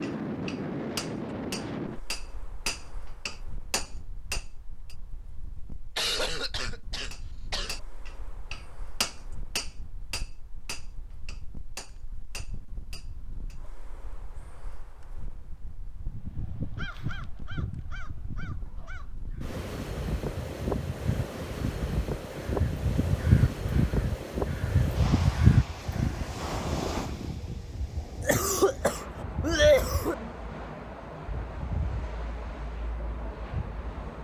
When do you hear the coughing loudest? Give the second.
30 s.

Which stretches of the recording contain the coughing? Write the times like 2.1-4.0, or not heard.
6.0-7.8, 28.2-30.1.